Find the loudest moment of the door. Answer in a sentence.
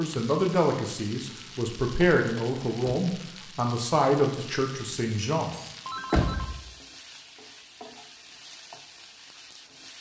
The volume of the door peaks at 6 seconds.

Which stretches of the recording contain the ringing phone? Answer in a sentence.
The ringing phone can be heard from 5.8 to 6.5 s.